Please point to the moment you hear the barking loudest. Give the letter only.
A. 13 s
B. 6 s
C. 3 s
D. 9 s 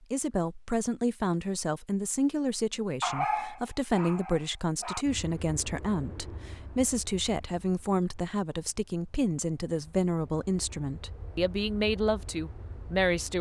C.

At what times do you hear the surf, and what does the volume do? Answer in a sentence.
The surf can't be heard in this clip.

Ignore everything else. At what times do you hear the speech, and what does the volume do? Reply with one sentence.
The speech can be heard from 0.0 to 13.3 s, at a steady volume.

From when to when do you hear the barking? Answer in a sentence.
You can hear the barking from 3.0 to 5.0 s.